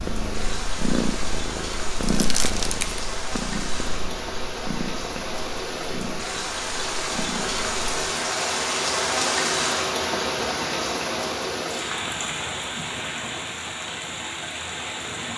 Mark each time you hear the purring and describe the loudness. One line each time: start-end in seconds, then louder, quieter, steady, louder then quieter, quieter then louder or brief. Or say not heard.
0.0-7.9 quieter.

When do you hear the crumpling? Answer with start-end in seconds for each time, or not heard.
2.0-3.0.